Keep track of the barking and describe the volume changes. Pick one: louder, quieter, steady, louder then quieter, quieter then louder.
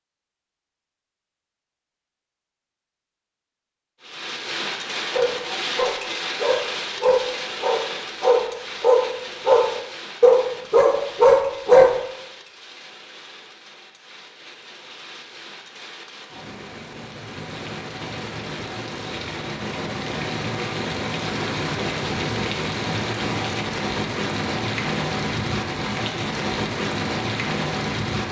louder.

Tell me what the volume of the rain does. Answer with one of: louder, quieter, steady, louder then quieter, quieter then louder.
quieter then louder.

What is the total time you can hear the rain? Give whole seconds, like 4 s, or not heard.
24 s.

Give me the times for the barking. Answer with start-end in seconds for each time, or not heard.
5.1-11.9.